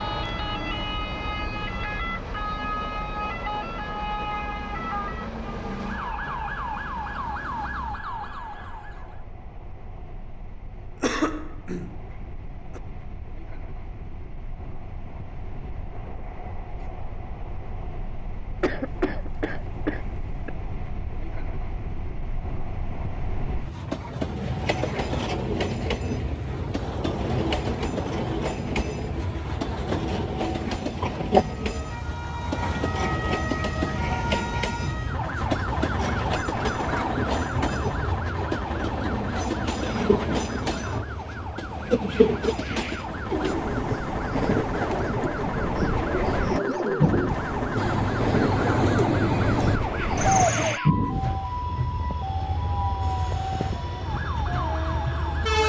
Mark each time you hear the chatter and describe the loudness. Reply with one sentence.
You can't hear the chatter here.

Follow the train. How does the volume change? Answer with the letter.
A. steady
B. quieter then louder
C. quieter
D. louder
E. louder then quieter
D.